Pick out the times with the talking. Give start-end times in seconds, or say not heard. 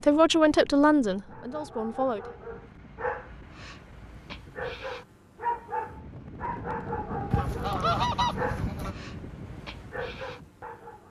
0.0-2.2.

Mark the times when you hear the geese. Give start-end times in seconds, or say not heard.
7.3-8.9.